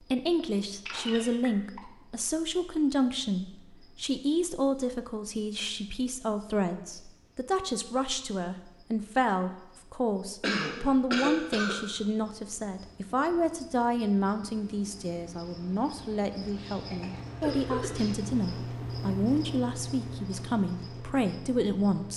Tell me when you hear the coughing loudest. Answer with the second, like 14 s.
11 s.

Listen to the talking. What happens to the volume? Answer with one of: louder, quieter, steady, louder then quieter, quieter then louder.
steady.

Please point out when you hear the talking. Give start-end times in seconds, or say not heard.
0.1-22.1.